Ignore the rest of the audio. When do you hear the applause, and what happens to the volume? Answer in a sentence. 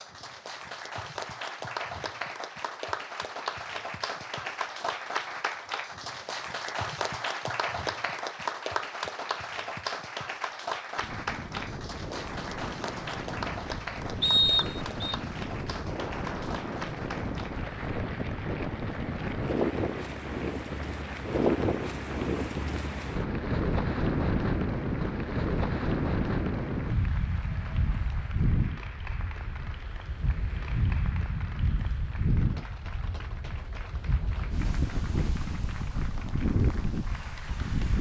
You can hear the applause from 0.0 to 37.9 s, getting quieter.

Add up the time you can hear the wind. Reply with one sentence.
You can hear the wind for 27 seconds altogether.